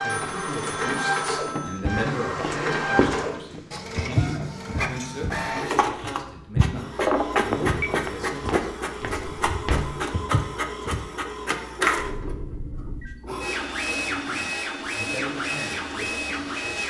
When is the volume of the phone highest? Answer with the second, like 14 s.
7 s.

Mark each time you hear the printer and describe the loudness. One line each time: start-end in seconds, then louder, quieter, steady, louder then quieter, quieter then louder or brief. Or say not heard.
0.0-16.8 steady.